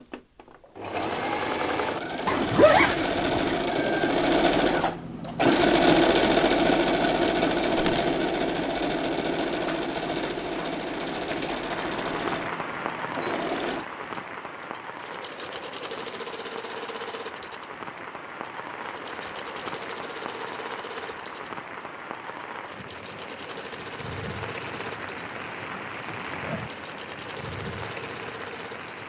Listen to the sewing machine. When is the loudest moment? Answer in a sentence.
The loudest moment of the sewing machine is at 6 seconds.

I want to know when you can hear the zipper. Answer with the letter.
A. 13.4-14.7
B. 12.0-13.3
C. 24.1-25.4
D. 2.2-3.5
D.